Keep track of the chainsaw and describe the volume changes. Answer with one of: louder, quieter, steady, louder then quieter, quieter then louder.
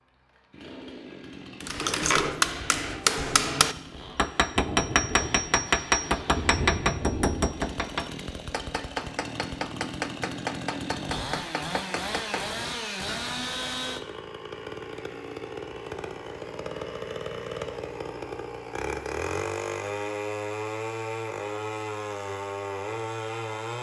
louder.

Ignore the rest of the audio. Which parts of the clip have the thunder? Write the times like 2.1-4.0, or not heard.
4.0-7.6.